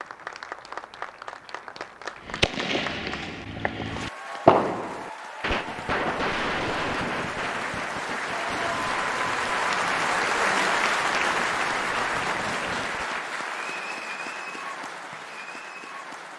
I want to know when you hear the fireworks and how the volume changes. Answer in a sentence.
You can hear the fireworks from 2.2 to 13.2 s, getting quieter.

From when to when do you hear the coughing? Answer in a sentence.
The coughing can't be heard in this clip.